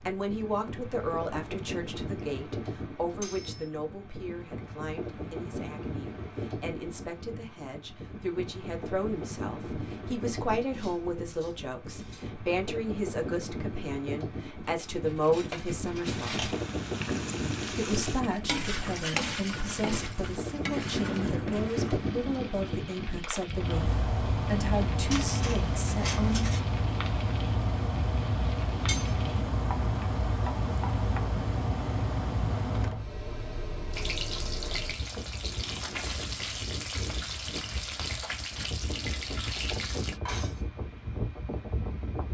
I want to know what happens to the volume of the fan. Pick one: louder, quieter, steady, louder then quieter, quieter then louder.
louder then quieter.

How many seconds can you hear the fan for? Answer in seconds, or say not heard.
42 s.